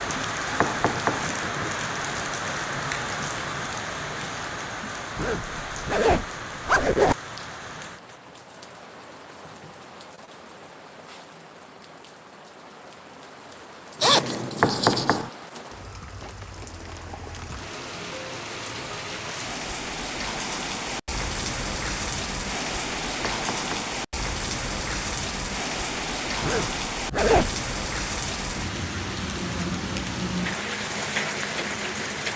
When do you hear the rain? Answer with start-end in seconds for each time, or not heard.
0.0-32.3.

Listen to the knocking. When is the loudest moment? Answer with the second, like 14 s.
15 s.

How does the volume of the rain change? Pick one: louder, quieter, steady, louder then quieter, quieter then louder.
quieter then louder.